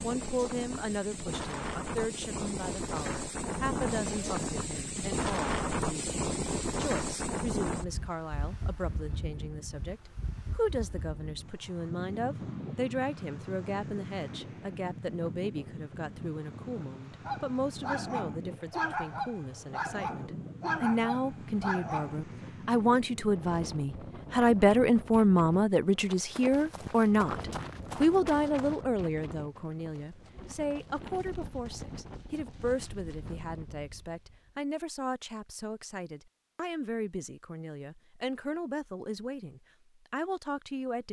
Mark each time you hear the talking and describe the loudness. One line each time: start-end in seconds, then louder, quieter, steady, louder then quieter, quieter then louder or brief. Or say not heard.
0.0-41.0 louder then quieter.